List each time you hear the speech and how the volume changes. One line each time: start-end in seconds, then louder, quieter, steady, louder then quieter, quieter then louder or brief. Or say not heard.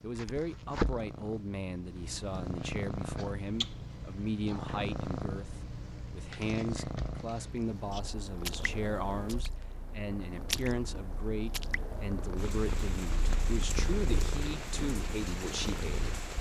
0.0-16.2 steady.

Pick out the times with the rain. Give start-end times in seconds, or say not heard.
7.5-16.3.